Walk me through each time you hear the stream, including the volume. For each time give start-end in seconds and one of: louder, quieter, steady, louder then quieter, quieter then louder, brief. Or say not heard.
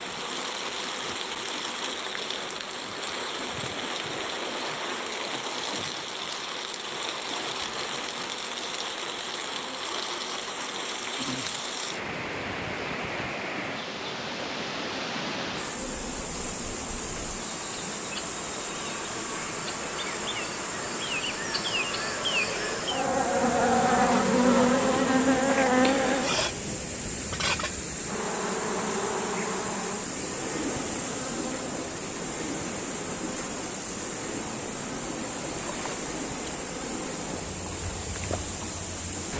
0.0-39.3 steady.